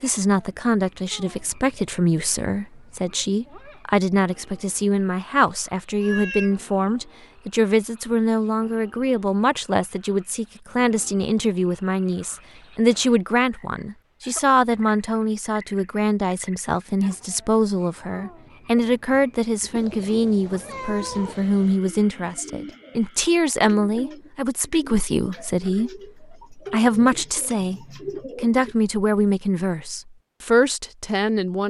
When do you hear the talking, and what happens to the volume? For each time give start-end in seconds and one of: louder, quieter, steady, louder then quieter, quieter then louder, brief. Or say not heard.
0.0-31.6 steady.